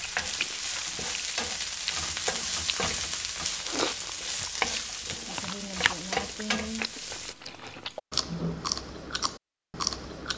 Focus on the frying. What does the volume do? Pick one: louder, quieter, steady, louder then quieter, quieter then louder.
steady.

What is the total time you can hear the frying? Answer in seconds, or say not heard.
7 s.